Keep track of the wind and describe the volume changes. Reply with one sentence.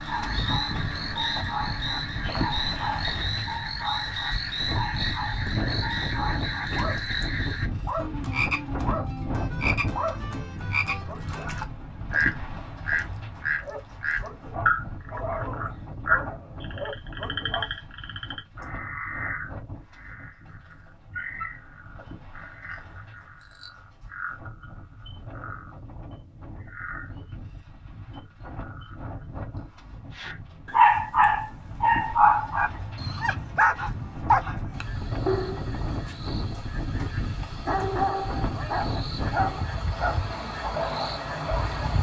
The volume of the wind goes down, then up.